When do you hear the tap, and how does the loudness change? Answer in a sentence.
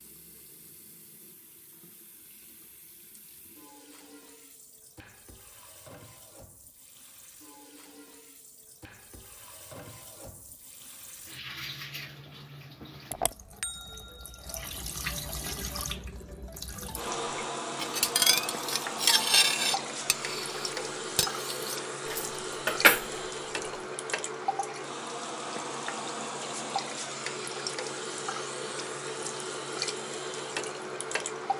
You can hear the tap from 0.0 to 31.5 s, getting louder.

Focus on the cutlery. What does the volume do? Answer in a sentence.
The loudness of the cutlery goes down, then up.